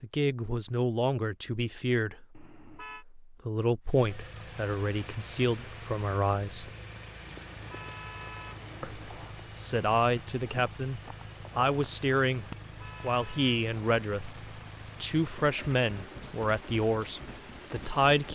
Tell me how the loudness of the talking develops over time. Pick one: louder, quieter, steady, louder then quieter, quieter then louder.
steady.